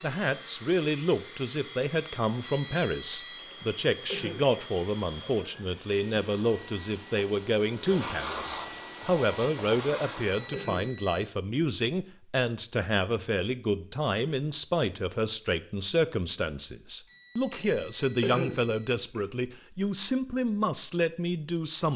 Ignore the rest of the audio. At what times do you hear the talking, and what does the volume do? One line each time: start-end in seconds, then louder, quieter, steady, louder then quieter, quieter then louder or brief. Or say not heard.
0.0-21.9 steady.